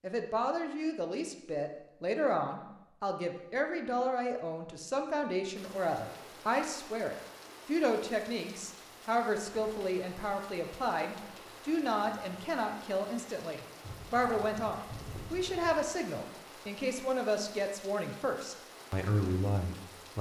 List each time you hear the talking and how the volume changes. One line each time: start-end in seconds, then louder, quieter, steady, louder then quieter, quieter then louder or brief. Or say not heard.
0.0-20.1 steady.